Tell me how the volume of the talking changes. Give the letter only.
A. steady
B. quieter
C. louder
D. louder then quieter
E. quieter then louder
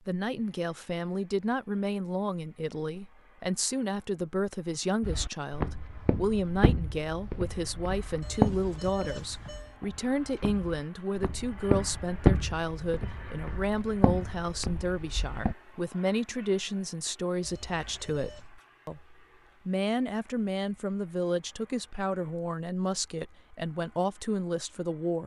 A.